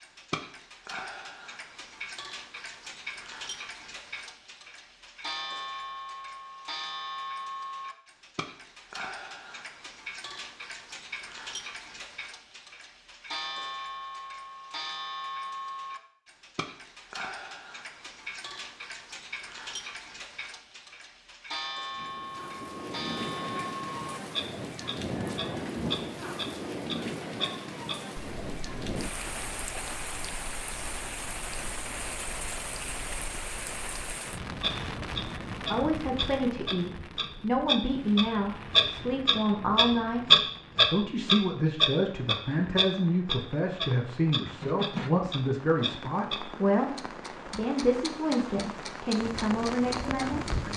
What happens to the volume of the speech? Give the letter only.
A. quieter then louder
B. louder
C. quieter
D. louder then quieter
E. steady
E.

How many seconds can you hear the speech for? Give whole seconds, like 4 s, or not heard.
15 s.